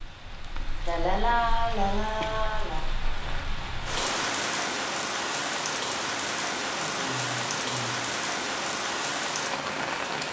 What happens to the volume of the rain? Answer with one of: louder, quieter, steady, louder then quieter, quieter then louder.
louder.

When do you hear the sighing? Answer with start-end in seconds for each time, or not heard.
0.8-2.9, 6.8-8.0.